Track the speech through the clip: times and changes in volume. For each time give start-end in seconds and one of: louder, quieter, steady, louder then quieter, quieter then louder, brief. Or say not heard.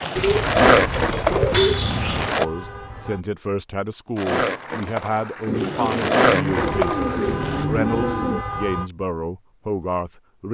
2.4-10.4 steady.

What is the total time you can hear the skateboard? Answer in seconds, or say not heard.
6 s.